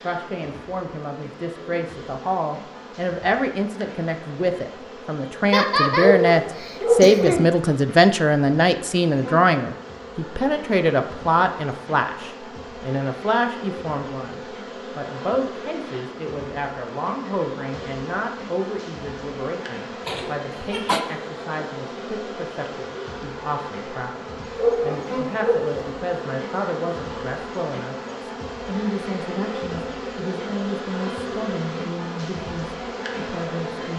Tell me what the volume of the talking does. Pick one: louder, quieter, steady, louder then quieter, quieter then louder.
quieter.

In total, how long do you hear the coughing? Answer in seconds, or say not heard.
3 s.